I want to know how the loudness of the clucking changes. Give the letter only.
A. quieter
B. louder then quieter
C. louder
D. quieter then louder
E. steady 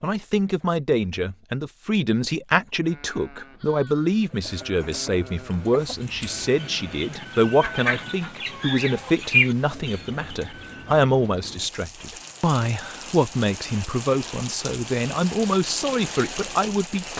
C.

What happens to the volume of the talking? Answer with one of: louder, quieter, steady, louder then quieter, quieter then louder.
steady.